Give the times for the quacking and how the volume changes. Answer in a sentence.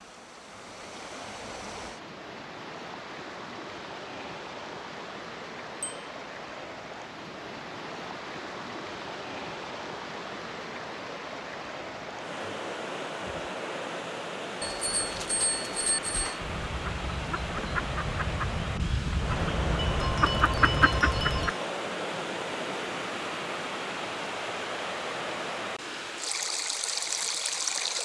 You can hear the quacking from 16.4 to 21.6 s, getting louder.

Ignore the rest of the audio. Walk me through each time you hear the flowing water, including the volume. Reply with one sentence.
The flowing water can be heard from 0.0 to 28.0 s, getting louder.